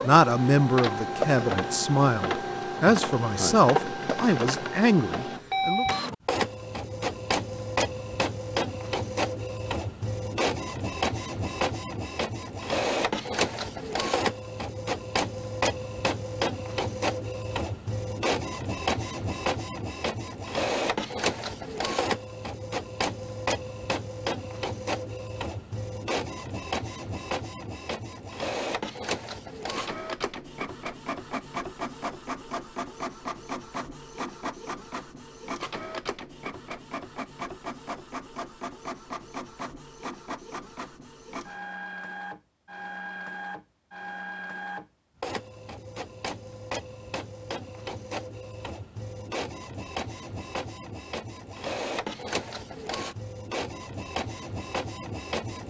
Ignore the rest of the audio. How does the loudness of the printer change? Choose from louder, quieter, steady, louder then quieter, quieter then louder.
quieter.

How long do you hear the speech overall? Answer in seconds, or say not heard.
6 s.